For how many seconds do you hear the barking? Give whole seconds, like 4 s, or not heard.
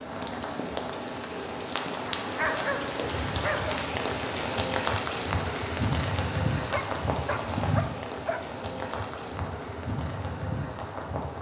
4 s.